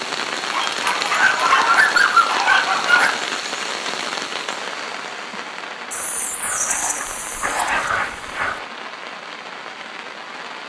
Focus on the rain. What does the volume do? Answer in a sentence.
The loudness of the rain goes down.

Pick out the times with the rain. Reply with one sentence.
The rain can be heard from 0.0 to 10.6 s.